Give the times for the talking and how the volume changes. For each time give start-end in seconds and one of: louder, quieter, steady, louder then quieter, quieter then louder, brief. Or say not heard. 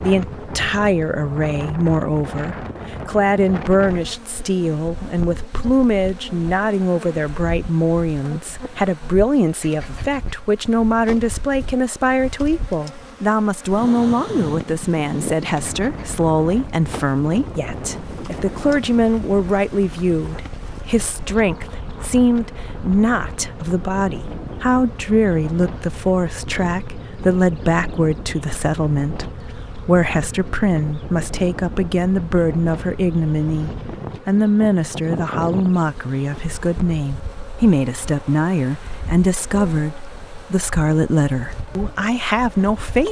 0.0-43.0 steady.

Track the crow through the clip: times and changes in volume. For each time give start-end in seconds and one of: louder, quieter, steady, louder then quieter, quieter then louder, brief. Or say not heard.
not heard.